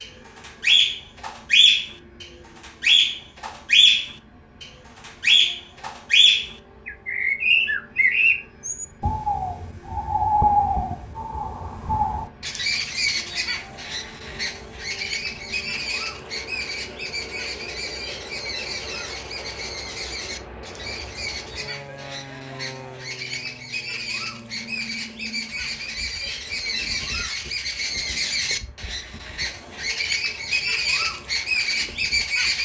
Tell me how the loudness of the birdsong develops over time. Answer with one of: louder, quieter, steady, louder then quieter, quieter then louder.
quieter then louder.